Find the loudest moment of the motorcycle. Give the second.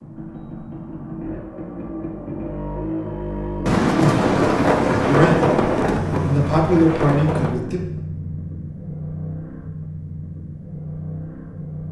5 s.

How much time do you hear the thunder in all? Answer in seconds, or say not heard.
4 s.